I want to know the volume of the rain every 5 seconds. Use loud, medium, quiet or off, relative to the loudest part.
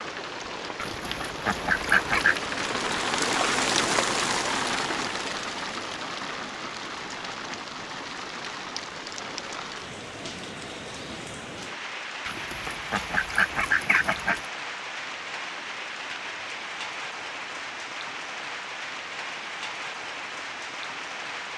loud, medium, medium, medium, medium.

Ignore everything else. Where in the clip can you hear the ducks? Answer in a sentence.
You can hear the ducks from 0.8 to 2.4 s and from 12.2 to 14.4 s.